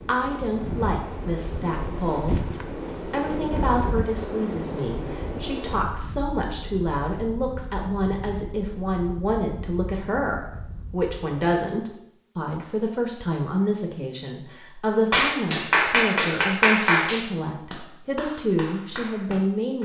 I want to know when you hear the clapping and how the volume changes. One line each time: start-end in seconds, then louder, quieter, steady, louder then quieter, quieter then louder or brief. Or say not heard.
15.1-19.7 quieter.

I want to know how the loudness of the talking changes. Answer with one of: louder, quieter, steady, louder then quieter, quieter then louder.
steady.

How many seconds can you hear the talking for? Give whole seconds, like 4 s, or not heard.
20 s.